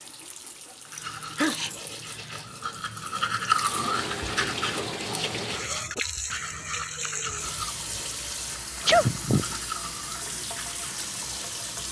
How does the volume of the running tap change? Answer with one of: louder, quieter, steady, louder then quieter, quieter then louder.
louder.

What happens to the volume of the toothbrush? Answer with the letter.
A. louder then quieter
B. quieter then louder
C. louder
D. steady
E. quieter
A.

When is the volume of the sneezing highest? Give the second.
9 s.